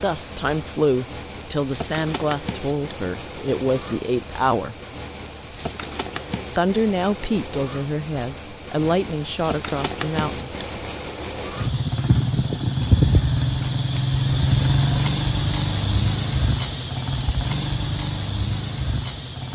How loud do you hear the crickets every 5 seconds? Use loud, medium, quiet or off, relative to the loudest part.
medium, medium, loud, loud.